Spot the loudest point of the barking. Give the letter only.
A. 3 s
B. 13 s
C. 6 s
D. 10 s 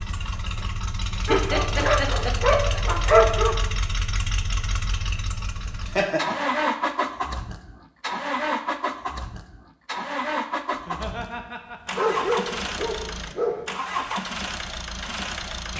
A.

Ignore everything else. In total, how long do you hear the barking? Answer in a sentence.
The barking can be heard for 4 seconds in total.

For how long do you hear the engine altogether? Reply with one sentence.
The engine can be heard for 16 seconds in total.